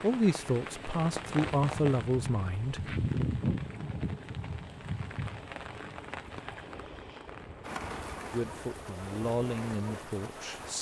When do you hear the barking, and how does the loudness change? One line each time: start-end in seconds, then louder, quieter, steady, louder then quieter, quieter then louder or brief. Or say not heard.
not heard.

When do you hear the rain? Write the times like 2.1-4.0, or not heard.
0.0-10.7.